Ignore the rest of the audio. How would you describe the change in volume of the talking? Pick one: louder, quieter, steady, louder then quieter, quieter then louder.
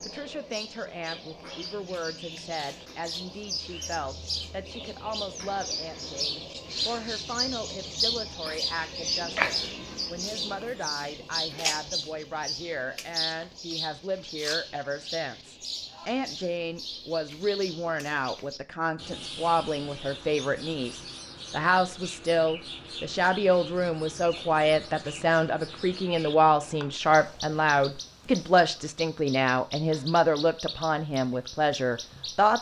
louder.